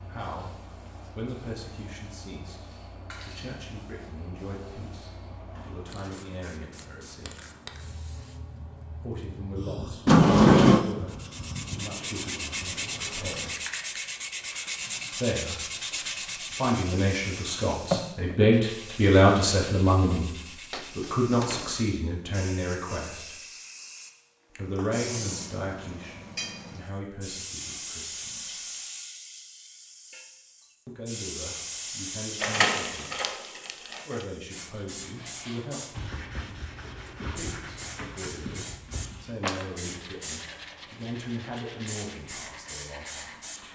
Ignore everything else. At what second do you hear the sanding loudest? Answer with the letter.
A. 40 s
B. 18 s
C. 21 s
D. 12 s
B.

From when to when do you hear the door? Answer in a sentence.
You can hear the door from 10.1 to 10.8 s, from 20.7 to 21.9 s and from 32.4 to 34.0 s.